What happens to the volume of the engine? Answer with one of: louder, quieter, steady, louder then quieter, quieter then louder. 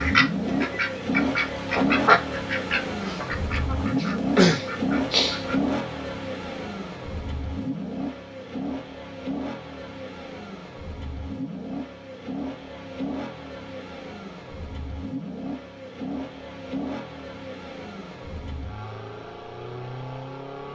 quieter.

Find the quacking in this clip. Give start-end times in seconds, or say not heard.
0.0-5.5.